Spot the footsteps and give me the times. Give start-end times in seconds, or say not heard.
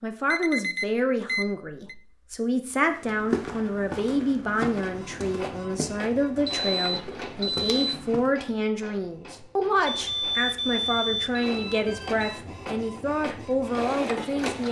2.9-8.3.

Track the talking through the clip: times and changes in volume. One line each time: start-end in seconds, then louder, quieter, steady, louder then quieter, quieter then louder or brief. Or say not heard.
0.0-14.6 steady.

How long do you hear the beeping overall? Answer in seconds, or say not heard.
5 s.